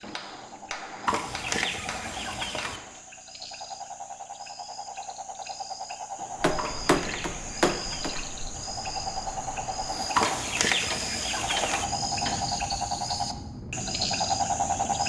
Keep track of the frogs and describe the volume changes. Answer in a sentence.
The volume of the frogs goes up.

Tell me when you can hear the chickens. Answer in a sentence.
The chickens can be heard from 1.1 to 2.8 s, from 6.5 to 8.3 s and from 10.2 to 11.8 s.